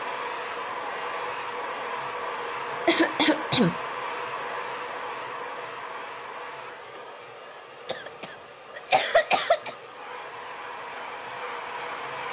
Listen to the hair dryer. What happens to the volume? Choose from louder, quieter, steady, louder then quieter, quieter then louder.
quieter then louder.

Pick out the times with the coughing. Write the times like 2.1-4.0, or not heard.
2.9-3.8, 7.8-9.8.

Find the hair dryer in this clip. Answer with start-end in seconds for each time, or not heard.
0.0-12.2.